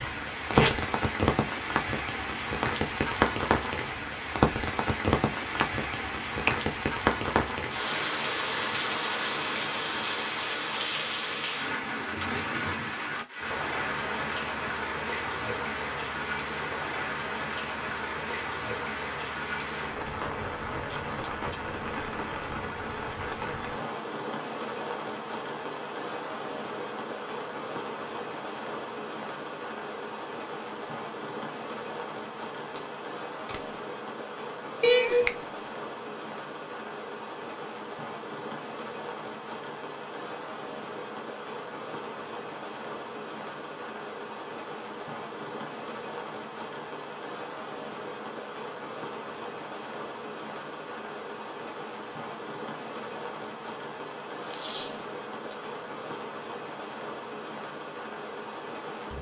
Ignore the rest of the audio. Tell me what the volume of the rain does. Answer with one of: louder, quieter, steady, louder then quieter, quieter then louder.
quieter.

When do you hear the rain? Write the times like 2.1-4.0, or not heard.
0.0-59.1.